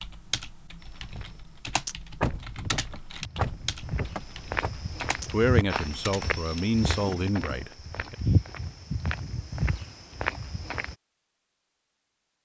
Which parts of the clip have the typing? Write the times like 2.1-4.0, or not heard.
0.0-7.7.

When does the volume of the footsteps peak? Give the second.
8 s.